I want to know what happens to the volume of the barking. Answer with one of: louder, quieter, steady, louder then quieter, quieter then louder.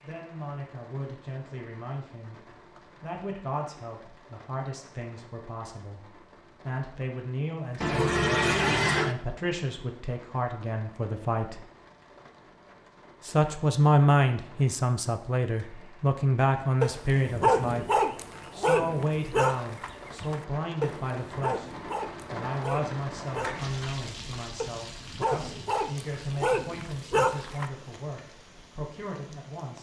quieter then louder.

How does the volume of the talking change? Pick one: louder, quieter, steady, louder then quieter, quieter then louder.
louder then quieter.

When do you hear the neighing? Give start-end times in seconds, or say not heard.
7.8-9.2.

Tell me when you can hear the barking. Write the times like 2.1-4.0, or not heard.
16.8-27.6.